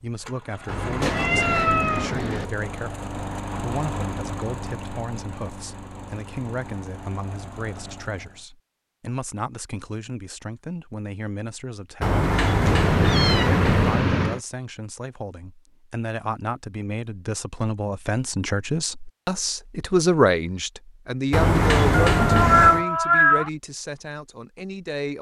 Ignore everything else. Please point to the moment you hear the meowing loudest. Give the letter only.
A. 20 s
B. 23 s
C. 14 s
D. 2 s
B.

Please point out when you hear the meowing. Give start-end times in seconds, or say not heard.
1.0-2.5, 12.7-14.4, 21.9-23.5.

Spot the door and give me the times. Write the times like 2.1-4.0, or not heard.
0.7-2.5, 12.0-14.1, 21.3-22.9.